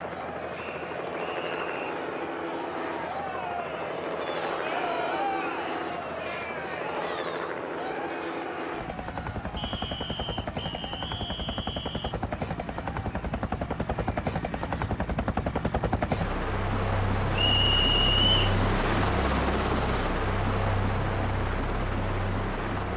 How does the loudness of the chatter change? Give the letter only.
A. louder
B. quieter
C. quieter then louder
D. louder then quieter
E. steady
D.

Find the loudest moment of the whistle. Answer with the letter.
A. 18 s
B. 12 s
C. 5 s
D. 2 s
A.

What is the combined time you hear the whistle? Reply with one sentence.
The whistle can be heard for 5 seconds in total.